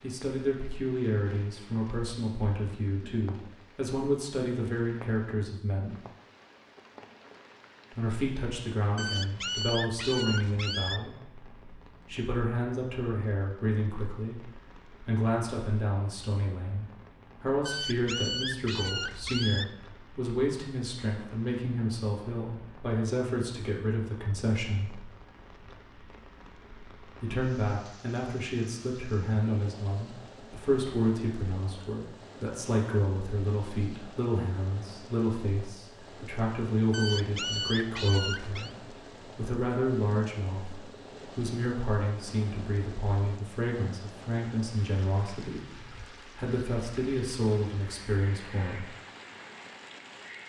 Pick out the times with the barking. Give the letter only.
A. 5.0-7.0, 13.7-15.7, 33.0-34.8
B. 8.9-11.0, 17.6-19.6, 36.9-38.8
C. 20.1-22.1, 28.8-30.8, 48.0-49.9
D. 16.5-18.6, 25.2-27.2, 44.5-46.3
B.